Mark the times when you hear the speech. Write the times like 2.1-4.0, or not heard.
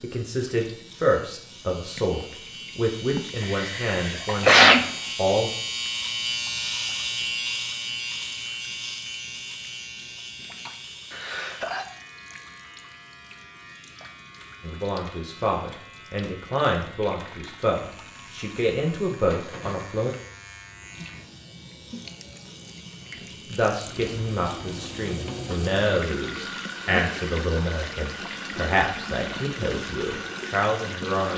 0.0-5.5, 14.6-20.1, 23.5-31.3.